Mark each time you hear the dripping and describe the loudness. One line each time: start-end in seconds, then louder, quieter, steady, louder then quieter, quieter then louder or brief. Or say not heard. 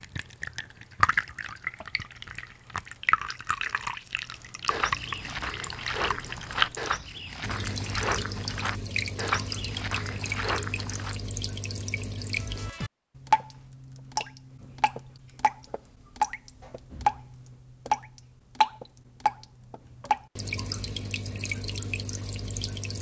0.0-22.9 steady.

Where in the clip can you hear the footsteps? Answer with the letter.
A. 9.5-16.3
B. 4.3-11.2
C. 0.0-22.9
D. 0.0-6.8
B.